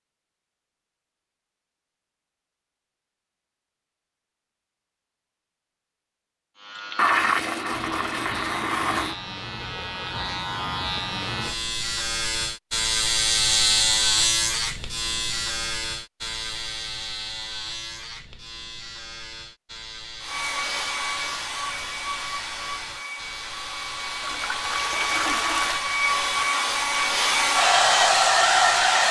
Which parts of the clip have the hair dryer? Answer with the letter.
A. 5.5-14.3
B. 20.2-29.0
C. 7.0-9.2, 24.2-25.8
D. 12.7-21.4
B.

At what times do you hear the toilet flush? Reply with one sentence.
The toilet flush can be heard from 7.0 to 9.2 s and from 24.2 to 25.8 s.